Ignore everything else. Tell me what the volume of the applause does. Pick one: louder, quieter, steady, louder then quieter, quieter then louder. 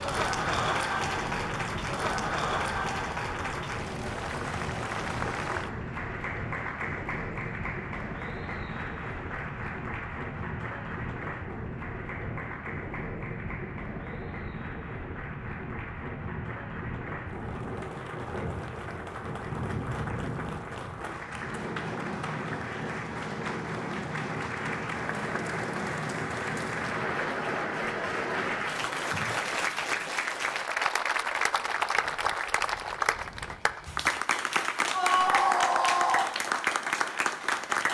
quieter then louder.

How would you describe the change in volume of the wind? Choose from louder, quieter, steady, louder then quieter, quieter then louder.
steady.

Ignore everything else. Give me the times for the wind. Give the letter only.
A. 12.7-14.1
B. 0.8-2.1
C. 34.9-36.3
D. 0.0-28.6
D.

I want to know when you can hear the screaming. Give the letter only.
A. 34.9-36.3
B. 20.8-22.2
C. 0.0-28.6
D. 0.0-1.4
A.